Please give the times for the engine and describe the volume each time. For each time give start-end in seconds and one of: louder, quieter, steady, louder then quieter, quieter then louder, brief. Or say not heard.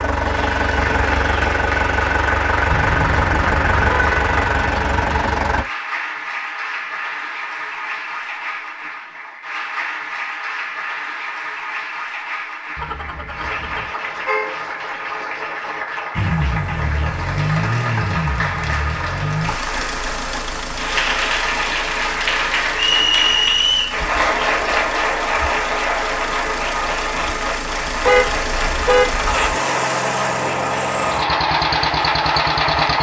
0.0-5.7 steady
16.1-32.9 quieter then louder.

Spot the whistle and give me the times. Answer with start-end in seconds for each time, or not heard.
22.8-24.0.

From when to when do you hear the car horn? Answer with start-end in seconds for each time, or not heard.
2.6-4.7, 12.8-14.6, 28.1-29.3.